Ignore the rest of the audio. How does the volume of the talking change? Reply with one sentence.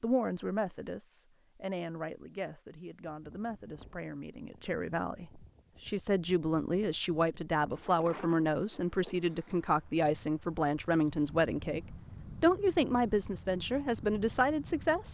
The volume of the talking goes up.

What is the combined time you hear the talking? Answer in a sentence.
You can hear the talking for 15 seconds altogether.